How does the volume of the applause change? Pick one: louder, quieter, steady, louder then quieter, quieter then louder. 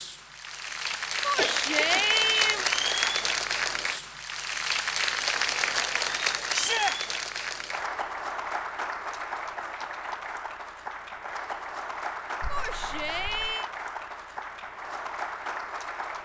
quieter.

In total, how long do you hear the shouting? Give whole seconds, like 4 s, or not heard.
3 s.